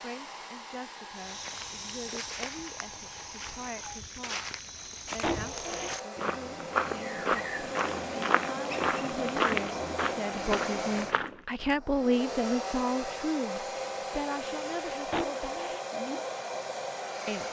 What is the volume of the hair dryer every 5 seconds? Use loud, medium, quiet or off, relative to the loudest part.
medium, loud, loud, loud.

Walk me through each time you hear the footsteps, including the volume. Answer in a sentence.
The footsteps can be heard from 1.1 to 11.4 s, getting louder.